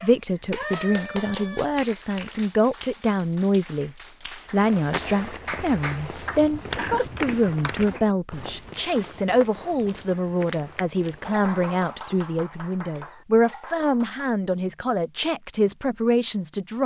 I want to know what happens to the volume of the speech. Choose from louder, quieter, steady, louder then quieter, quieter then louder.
steady.